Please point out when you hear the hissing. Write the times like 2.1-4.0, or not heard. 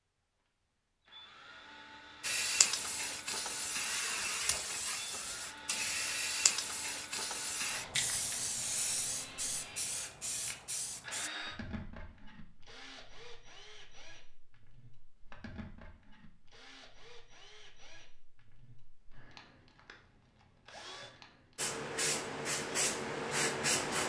2.2-11.3, 21.6-24.0.